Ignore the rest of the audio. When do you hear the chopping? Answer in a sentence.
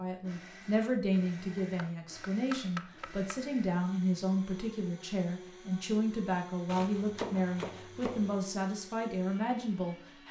The chopping can be heard from 1.4 to 3.5 s and from 6.7 to 8.4 s.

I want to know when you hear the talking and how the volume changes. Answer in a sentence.
The talking can be heard from 0.0 to 10.2 s, at a steady volume.